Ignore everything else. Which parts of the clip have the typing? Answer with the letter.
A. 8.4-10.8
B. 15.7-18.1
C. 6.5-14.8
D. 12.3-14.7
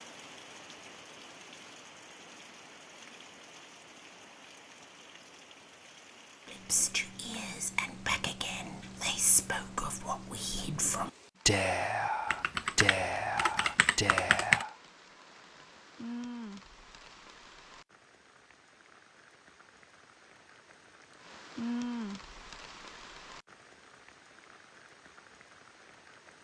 D.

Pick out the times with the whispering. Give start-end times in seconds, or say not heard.
6.5-14.8.